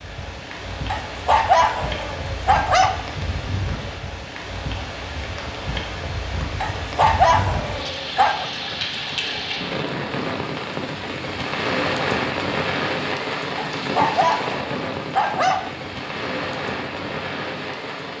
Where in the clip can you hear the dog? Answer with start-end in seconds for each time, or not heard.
0.8-2.9, 6.6-8.4, 13.6-15.6.